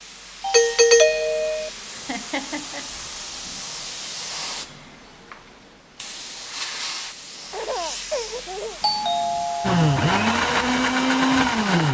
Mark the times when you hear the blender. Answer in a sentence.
You can hear the blender from 9.6 to 11.8 s.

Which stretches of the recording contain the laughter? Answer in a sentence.
The laughter can be heard from 1.9 to 2.9 s and from 7.5 to 8.8 s.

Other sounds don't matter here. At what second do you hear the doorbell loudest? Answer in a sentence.
The volume of the doorbell peaks at 1 second.